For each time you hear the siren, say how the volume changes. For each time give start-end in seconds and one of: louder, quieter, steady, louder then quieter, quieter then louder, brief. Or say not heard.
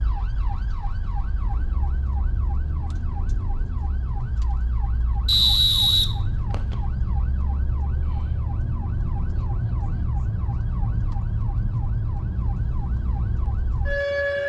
0.0-14.4 louder.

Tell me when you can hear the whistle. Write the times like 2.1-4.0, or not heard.
5.2-6.8.